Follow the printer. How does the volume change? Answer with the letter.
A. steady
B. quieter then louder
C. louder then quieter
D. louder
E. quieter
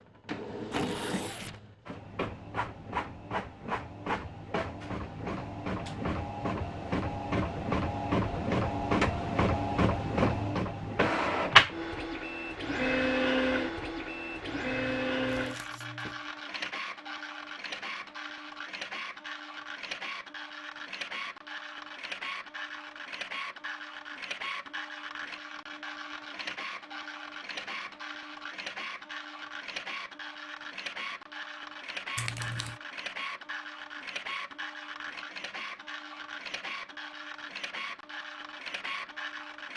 C.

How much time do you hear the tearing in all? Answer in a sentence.
You can hear the tearing for 3 seconds altogether.